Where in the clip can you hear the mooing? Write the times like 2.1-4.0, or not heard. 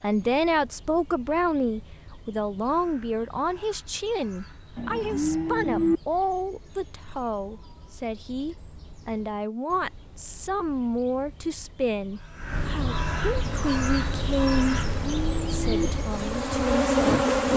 4.8-6.0, 14.9-15.9.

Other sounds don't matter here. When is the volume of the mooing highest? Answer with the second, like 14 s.
6 s.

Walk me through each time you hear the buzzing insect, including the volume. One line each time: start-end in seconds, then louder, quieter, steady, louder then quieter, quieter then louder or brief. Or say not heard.
13.4-17.5 louder.